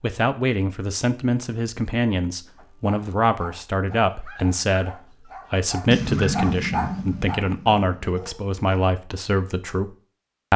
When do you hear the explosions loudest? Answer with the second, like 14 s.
6 s.